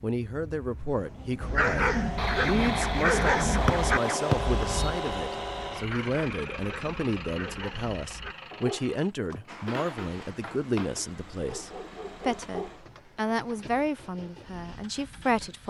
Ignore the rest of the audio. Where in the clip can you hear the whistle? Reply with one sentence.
You can hear the whistle from 3.6 to 4.9 s.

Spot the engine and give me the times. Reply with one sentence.
You can hear the engine from 0.0 to 15.6 s.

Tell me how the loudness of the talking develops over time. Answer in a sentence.
The loudness of the talking stays about the same.